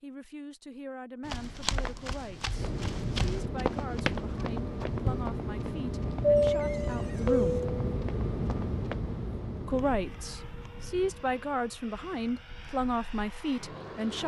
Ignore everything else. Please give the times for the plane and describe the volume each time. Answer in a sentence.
The plane can be heard from 2.5 to 14.2 s, getting louder then quieter.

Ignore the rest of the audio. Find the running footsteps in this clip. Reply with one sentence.
The running footsteps can be heard from 1.2 to 9.0 s.